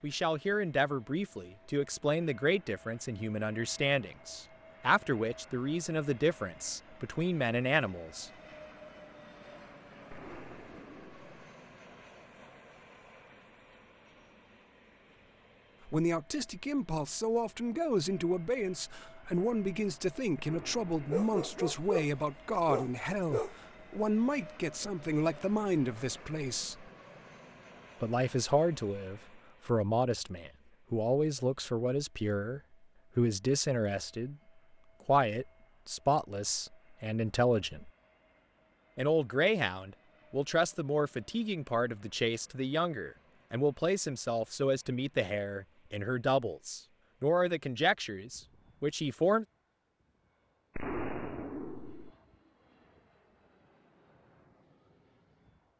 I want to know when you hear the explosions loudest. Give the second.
51 s.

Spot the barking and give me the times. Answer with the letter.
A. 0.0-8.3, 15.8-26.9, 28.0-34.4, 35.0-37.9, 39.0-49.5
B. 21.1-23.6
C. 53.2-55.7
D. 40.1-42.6
B.